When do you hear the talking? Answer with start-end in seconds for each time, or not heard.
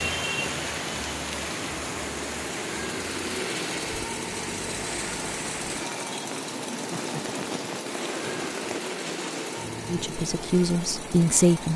9.8-11.7.